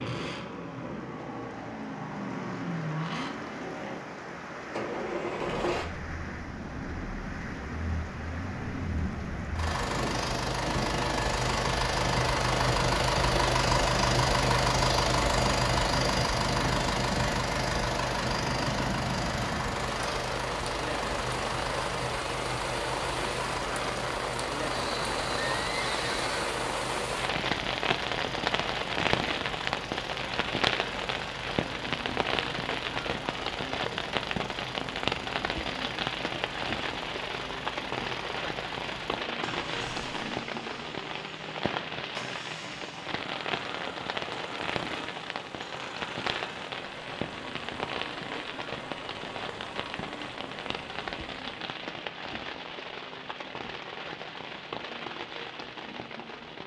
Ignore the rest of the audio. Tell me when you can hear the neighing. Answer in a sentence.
You can hear the neighing from 24.9 to 26.6 s.